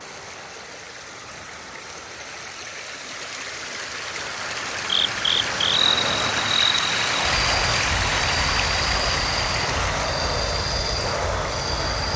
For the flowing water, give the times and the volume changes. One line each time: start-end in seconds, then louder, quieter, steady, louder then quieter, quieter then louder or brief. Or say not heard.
0.0-12.1 louder then quieter.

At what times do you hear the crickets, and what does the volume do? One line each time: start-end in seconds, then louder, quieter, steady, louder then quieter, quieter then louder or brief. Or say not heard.
4.8-12.1 quieter.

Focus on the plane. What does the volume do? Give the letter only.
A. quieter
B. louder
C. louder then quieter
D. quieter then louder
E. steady
B.